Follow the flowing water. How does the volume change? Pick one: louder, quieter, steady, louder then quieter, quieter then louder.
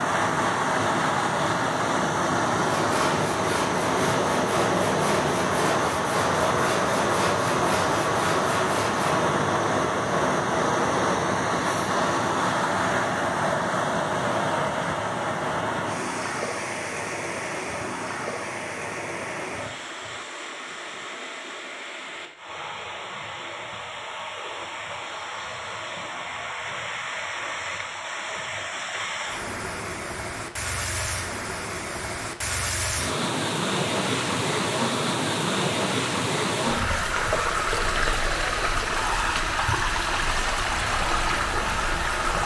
quieter then louder.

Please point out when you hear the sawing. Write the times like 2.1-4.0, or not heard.
2.8-9.2.